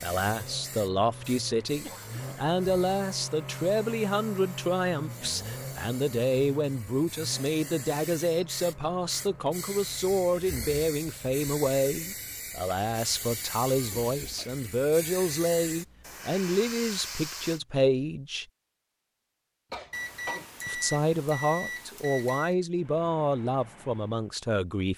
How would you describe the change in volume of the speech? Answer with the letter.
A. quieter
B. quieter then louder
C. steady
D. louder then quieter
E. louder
C.